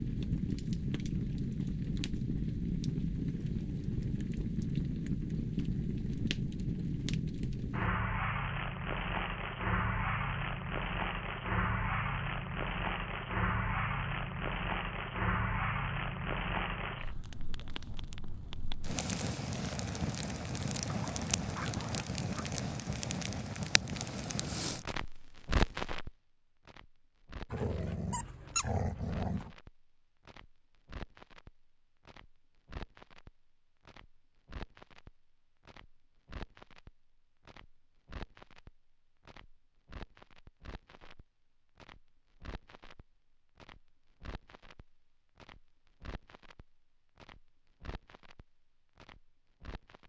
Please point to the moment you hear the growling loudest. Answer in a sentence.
The volume of the growling peaks at 29 seconds.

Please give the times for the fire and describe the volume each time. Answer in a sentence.
You can hear the fire from 0.0 to 50.0 s, getting quieter.